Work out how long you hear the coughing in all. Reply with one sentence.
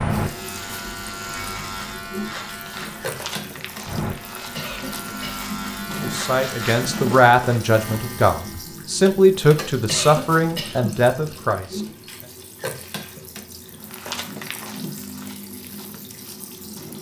You can hear the coughing for 2 seconds altogether.